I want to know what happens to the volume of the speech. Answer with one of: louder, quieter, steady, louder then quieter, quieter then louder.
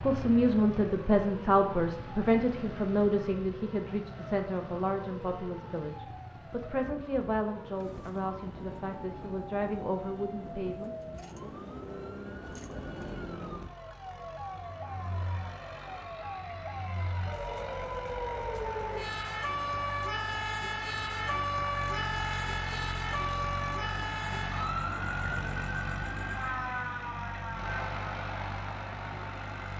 quieter.